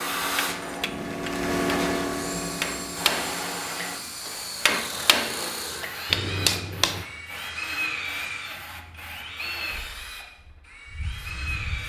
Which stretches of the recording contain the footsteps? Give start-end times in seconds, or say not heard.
not heard.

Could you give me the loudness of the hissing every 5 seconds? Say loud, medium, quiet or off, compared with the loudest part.
loud, quiet, quiet.